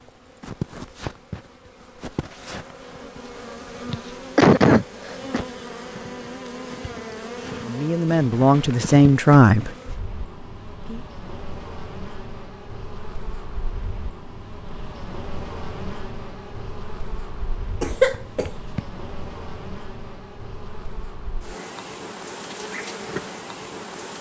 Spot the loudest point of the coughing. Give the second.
5 s.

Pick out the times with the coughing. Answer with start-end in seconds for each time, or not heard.
3.9-5.5, 17.8-18.8.